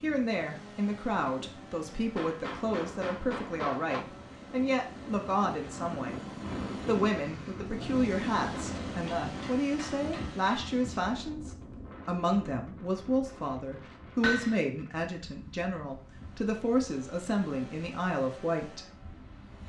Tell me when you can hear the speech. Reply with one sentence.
You can hear the speech from 0.0 to 6.2 s and from 6.8 to 18.9 s.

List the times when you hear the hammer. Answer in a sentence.
You can hear the hammer from 2.1 to 4.0 s, from 9.2 to 10.8 s and from 14.2 to 14.6 s.